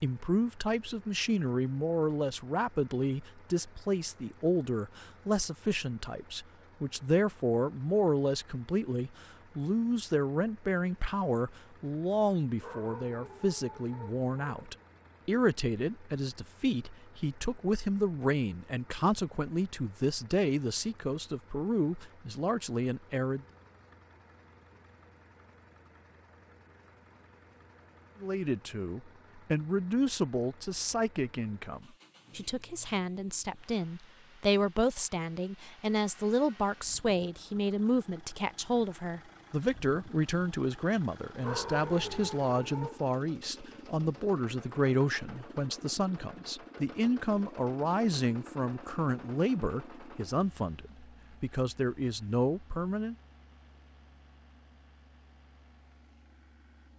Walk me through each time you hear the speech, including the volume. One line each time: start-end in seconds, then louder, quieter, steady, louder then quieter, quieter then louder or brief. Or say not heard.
0.0-23.4 steady
28.2-53.1 steady.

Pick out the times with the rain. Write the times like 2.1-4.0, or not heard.
not heard.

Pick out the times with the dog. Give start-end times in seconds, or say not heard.
12.6-14.8, 41.4-43.0.